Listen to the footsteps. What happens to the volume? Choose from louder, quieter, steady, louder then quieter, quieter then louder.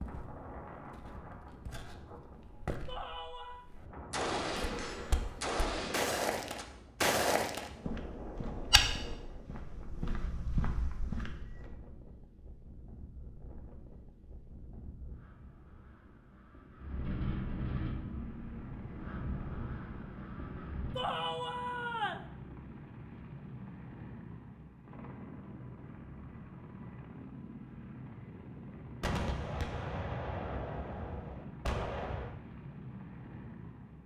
louder then quieter.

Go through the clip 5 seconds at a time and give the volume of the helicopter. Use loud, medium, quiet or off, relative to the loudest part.
off, off, off, loud, loud, loud, loud.